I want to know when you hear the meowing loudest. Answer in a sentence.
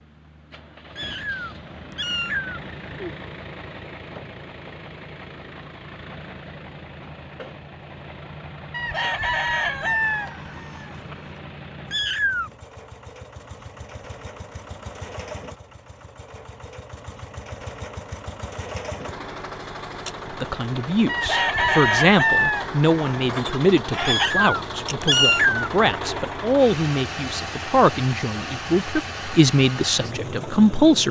The loudest moment of the meowing is at 25 seconds.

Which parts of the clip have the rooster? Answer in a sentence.
You can hear the rooster from 8.7 to 11.2 s and from 21.1 to 24.3 s.